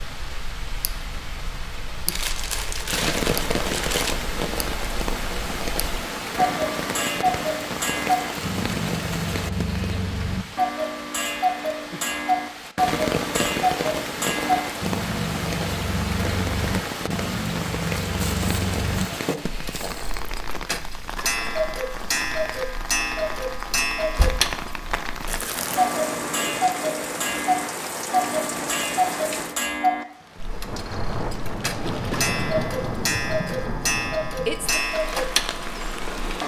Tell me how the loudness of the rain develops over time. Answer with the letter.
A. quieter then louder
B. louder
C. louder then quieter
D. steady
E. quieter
D.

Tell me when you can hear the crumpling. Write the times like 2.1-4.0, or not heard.
2.1-4.2, 18.2-20.2, 25.2-25.9.